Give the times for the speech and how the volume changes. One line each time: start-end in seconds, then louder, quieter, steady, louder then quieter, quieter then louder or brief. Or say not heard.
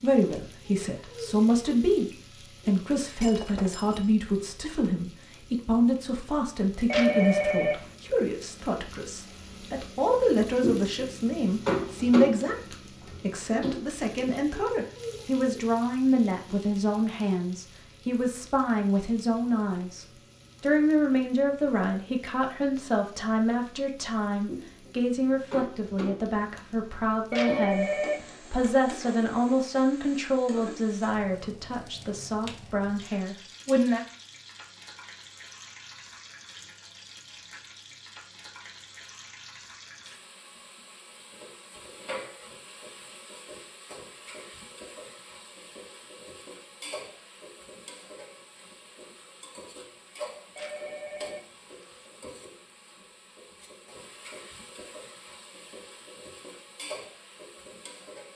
0.0-34.0 steady.